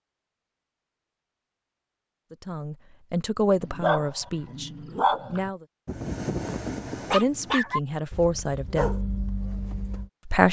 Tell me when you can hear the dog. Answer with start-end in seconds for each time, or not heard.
3.6-10.1.